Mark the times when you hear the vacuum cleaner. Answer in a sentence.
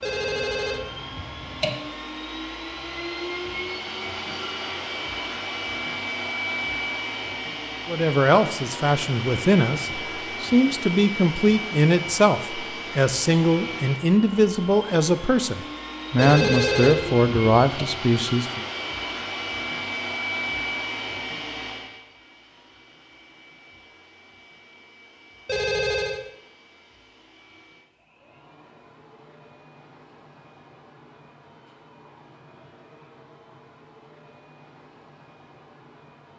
The vacuum cleaner can be heard from 0.0 to 36.3 s.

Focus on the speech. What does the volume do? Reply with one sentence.
The loudness of the speech stays about the same.